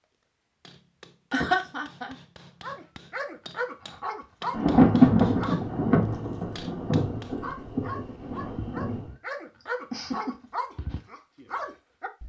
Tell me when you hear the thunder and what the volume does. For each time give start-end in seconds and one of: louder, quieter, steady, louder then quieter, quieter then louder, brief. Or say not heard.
4.5-9.1 quieter.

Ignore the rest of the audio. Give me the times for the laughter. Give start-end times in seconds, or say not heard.
1.3-2.1, 9.6-10.5.